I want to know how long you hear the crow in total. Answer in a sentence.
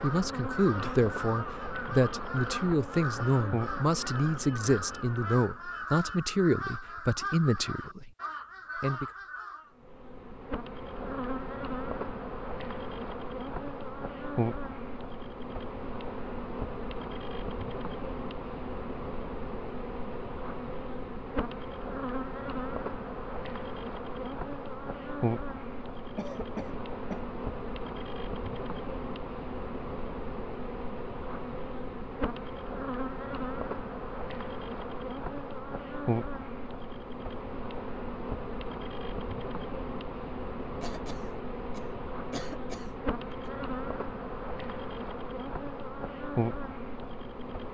You can hear the crow for 10 seconds altogether.